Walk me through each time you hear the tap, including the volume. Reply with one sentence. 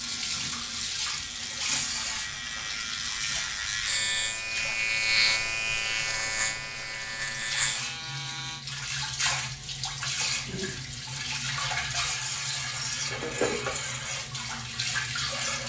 The tap can be heard from 0.0 to 15.6 s, getting quieter then louder.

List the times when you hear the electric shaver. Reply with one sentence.
The electric shaver can be heard from 0.0 to 8.7 s.